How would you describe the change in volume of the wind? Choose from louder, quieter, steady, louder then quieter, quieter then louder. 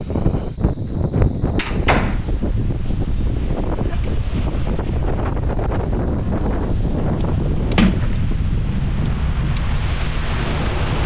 steady.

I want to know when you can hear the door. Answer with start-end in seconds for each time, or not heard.
1.6-2.2, 7.8-8.9.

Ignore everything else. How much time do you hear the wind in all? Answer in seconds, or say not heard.
11 s.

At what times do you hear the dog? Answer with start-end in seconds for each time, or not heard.
not heard.